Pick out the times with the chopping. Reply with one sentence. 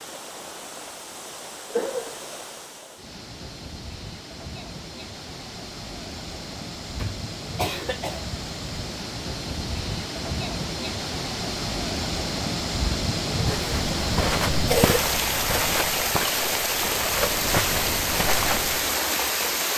You can't hear the chopping here.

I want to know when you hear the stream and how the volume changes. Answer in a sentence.
The stream can be heard from 0.0 to 19.7 s, getting louder.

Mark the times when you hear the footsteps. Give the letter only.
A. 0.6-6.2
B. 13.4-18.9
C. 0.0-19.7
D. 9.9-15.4
B.